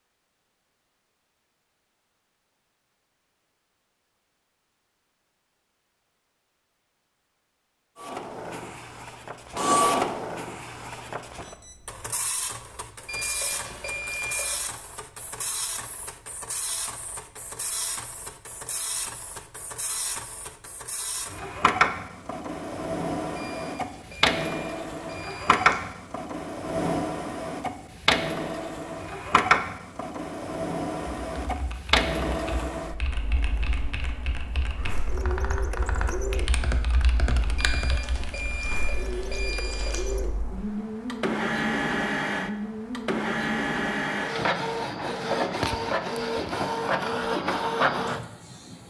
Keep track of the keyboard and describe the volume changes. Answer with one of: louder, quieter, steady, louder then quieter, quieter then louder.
louder.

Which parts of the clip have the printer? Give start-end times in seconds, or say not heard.
8.0-48.8.